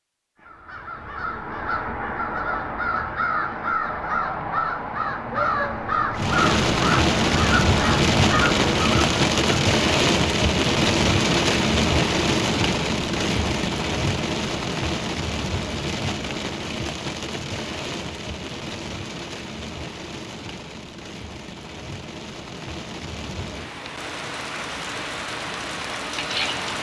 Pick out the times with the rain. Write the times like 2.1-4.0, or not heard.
6.2-26.7.